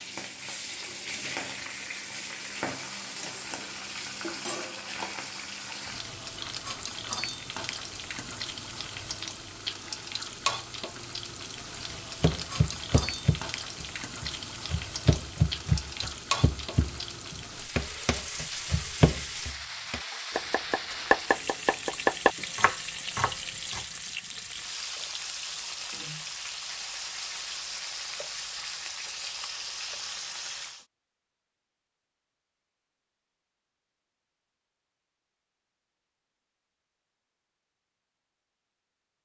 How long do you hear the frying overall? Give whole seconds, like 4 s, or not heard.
31 s.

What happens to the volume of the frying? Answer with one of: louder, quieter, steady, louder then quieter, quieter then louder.
steady.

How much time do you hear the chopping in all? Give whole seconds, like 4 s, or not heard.
12 s.